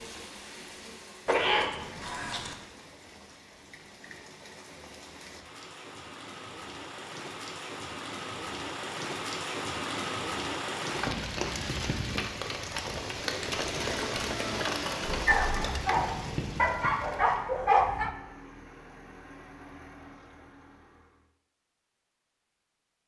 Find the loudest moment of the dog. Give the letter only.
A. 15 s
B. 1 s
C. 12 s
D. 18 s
D.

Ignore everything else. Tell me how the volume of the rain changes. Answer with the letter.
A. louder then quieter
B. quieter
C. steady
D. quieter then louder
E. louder
E.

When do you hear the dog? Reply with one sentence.
You can hear the dog from 15.1 to 18.1 s.